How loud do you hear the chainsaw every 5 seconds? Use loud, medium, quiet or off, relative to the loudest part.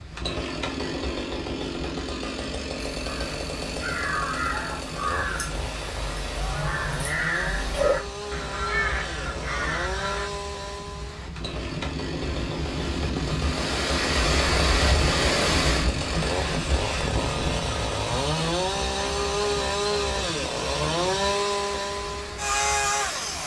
medium, medium, medium, loud, loud.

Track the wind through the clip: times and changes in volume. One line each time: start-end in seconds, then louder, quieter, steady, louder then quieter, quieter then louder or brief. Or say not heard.
0.0-23.4 louder then quieter.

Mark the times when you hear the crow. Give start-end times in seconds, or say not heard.
2.9-10.3.